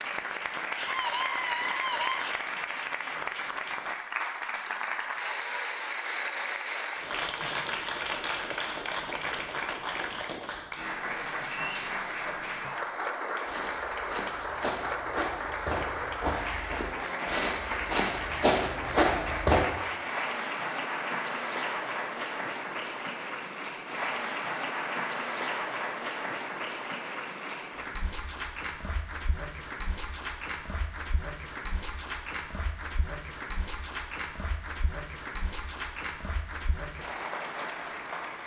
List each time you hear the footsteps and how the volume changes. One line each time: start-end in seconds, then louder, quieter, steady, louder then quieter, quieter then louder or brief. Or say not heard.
13.4-19.6 louder.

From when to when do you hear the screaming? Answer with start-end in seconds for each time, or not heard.
0.8-2.4.